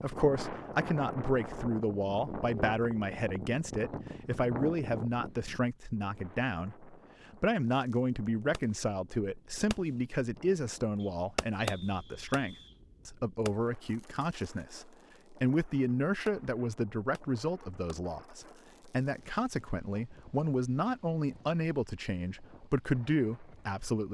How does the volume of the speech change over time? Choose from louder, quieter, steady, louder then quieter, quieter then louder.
steady.